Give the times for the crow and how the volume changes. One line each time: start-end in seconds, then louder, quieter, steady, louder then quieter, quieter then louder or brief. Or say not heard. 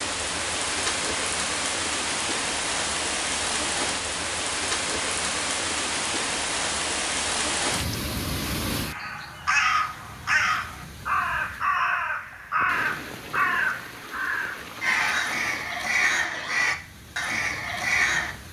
8.8-18.4 steady.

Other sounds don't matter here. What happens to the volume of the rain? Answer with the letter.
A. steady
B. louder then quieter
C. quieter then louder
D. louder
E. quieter
E.